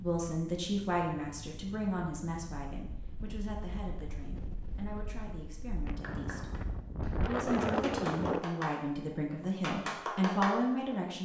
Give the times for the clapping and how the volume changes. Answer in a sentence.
The clapping can be heard from 5.8 to 10.9 s, getting louder.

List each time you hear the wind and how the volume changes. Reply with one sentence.
You can hear the wind from 0.0 to 8.4 s, getting louder.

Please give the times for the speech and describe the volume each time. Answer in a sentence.
You can hear the speech from 0.0 to 11.1 s, getting quieter then louder.